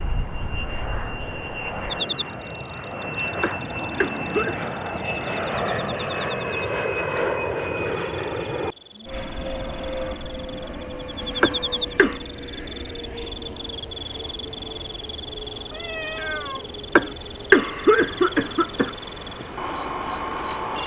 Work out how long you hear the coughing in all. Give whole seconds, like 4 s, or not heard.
4 s.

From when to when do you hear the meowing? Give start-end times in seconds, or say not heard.
15.7-16.7.